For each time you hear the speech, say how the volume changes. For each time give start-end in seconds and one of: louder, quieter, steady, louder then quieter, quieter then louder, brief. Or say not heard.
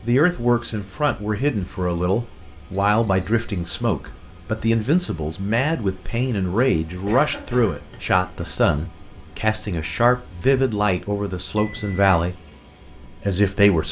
0.0-12.3 steady
13.1-13.8 brief.